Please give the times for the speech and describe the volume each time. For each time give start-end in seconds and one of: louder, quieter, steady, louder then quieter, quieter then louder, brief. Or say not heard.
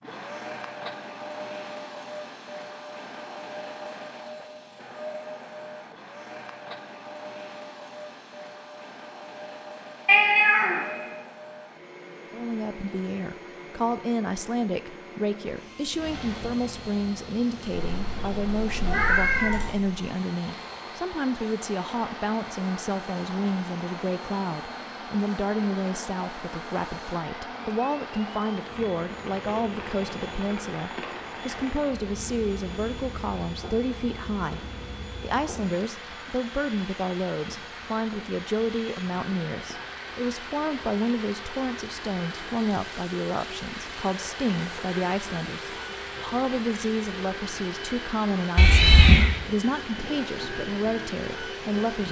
12.3-34.6 steady
35.2-52.0 steady.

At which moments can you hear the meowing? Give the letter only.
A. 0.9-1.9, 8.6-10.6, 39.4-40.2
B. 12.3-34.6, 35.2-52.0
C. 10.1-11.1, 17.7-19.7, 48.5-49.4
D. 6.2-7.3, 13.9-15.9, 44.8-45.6
C.